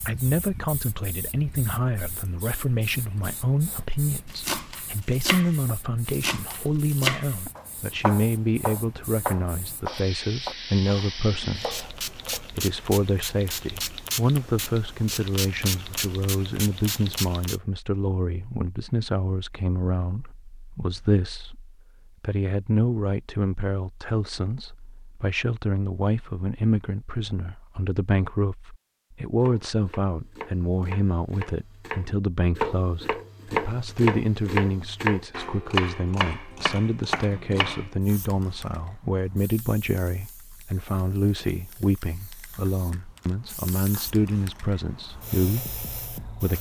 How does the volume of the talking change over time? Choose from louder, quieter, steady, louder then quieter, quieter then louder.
steady.